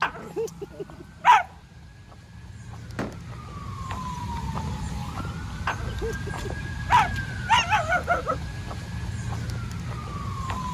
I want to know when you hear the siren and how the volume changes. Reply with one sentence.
The siren can be heard from 0.0 to 10.6 s, getting louder.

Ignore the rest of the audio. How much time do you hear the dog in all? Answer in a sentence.
The dog can be heard for 4 seconds in total.